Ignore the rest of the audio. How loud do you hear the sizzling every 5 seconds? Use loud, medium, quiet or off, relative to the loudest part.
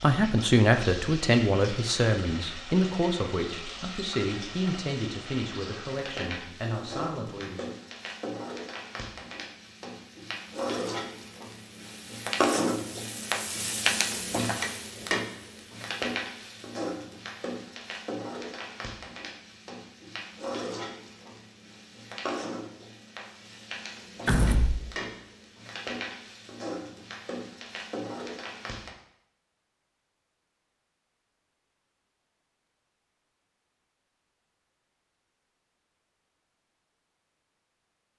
medium, medium, loud, medium, medium, medium, off, off.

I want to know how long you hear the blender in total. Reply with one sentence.
You can't hear the blender here.